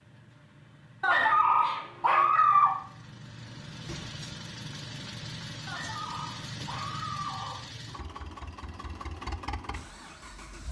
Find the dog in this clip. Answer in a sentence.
You can hear the dog from 1.0 to 2.8 s and from 5.7 to 7.7 s.